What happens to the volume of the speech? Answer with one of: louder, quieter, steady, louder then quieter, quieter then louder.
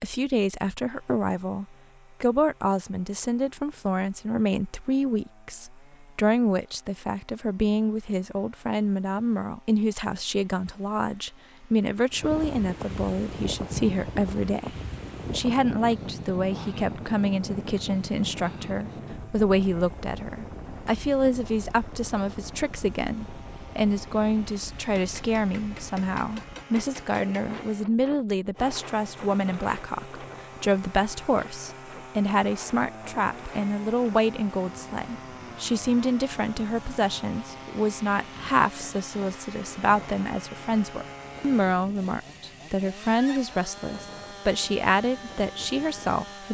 steady.